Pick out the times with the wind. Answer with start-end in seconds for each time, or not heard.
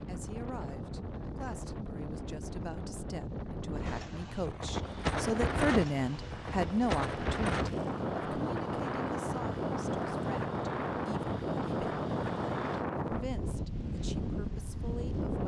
0.0-15.4.